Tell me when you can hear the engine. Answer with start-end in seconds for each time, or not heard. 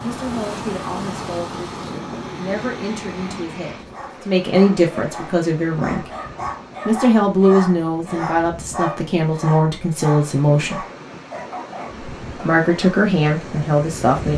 0.0-3.5.